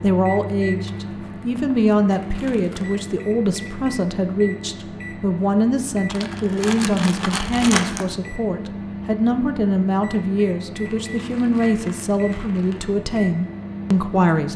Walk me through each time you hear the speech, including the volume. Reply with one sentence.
You can hear the speech from 0.0 to 14.5 s, at a steady volume.